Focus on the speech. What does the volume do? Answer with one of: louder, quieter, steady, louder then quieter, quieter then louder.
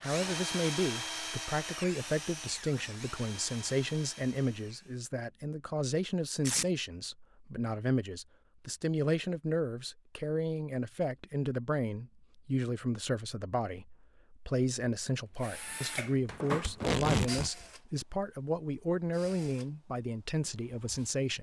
steady.